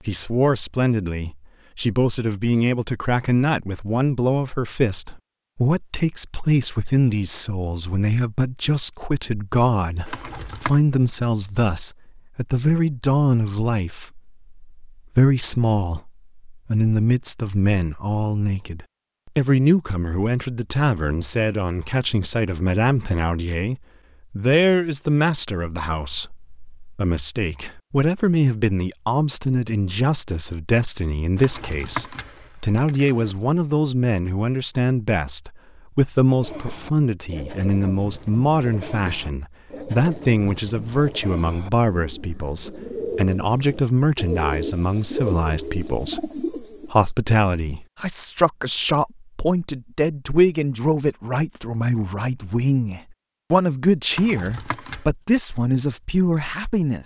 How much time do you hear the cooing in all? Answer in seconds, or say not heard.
11 s.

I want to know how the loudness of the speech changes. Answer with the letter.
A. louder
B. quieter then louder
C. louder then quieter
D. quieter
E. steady
E.